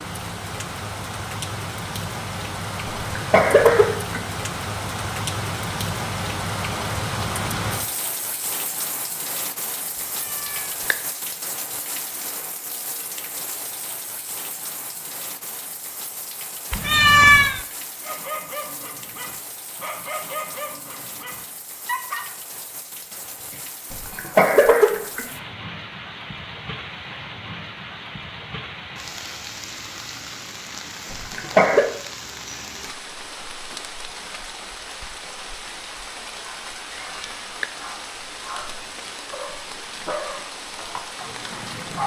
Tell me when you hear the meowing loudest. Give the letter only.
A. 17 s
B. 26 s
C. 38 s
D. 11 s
A.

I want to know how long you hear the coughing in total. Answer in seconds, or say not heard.
3 s.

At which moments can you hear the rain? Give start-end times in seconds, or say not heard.
0.0-42.0.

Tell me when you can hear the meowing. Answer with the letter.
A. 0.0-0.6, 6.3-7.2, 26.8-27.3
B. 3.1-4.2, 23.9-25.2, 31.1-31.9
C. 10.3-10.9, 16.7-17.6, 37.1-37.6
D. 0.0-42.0
C.